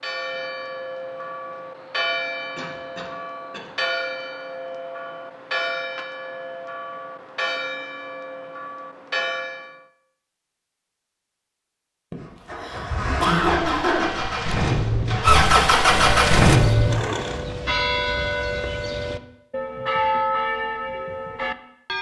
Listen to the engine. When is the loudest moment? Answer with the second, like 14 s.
16 s.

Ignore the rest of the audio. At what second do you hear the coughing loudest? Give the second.
13 s.